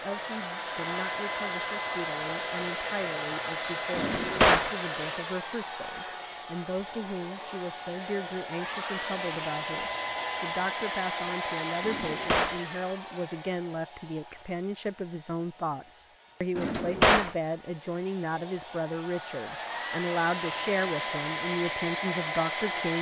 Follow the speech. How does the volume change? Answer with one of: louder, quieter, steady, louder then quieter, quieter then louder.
louder.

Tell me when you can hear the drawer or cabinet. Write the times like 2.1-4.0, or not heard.
3.9-4.7, 11.8-12.6, 16.6-17.4.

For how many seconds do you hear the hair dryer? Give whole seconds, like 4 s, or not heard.
23 s.